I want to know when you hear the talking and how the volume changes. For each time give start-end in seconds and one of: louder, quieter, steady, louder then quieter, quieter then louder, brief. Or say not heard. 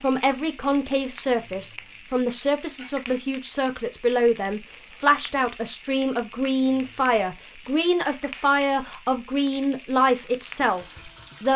0.0-11.5 steady.